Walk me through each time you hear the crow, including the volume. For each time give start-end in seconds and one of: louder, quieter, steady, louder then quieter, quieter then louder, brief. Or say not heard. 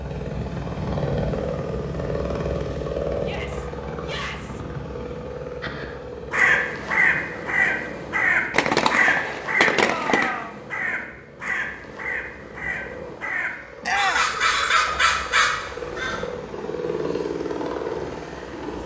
5.6-16.2 quieter then louder.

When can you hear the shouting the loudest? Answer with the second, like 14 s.
14 s.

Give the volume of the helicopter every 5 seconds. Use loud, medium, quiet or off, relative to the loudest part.
loud, medium, quiet, loud.